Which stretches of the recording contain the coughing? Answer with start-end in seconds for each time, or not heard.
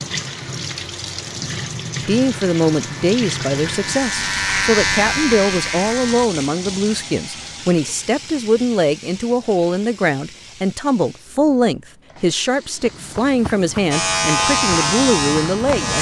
not heard.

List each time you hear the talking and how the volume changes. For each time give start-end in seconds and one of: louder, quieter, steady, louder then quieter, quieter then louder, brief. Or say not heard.
2.0-15.9 steady.